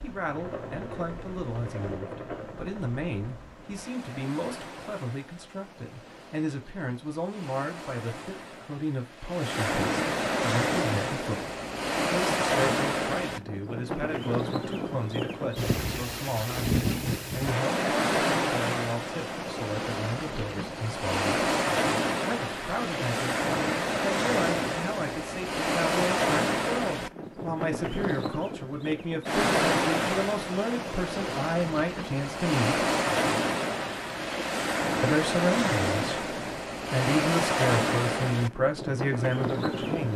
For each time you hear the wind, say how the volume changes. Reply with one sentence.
You can hear the wind from 0.0 to 40.1 s, getting louder.